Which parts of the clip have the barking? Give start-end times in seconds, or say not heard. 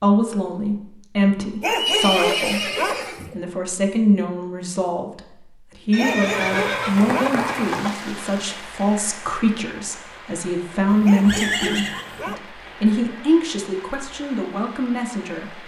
1.6-3.1, 6.0-7.4, 11.0-12.5.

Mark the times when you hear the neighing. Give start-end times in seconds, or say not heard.
1.6-3.4, 5.9-8.0, 10.8-12.2.